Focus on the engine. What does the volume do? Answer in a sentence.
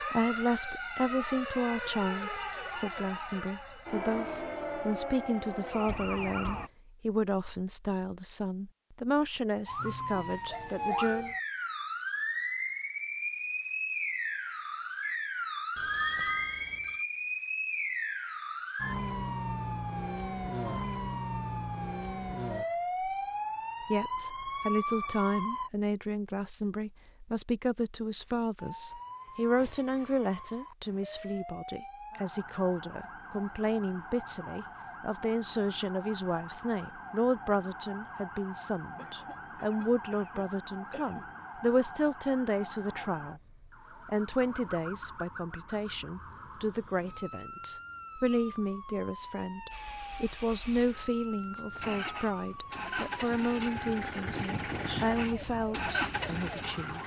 The loudness of the engine goes up.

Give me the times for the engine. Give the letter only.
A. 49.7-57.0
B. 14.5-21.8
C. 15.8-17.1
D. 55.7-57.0
A.